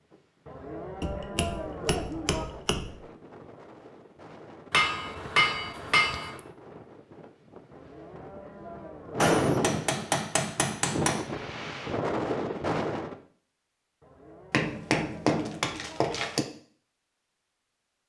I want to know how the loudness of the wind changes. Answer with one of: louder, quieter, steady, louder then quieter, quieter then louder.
louder.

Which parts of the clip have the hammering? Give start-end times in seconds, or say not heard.
1.0-3.0, 4.7-6.4, 9.2-11.3, 14.5-16.4.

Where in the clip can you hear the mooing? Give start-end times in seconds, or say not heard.
0.5-2.5, 7.7-9.3, 14.0-16.1.